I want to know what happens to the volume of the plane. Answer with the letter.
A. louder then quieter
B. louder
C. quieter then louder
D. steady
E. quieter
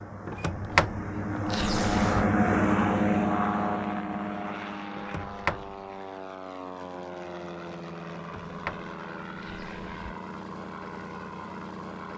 E.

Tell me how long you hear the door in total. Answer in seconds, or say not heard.
5 s.